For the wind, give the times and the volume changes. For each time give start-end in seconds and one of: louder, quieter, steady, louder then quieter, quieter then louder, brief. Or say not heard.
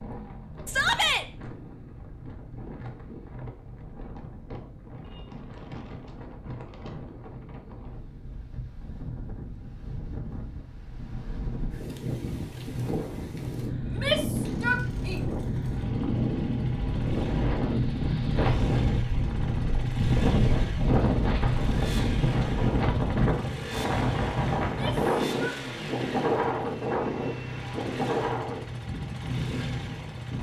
0.0-30.3 louder.